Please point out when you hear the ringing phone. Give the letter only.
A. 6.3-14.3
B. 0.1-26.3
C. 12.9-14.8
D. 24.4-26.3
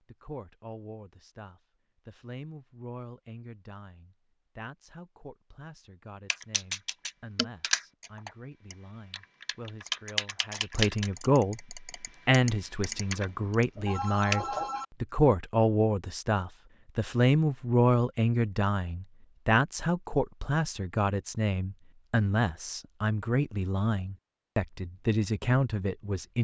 C.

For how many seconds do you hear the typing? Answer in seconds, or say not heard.
8 s.